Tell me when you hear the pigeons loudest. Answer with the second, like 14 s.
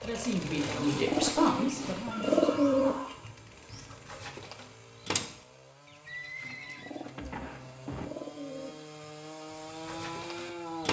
2 s.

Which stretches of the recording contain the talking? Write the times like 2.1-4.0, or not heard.
0.0-3.0.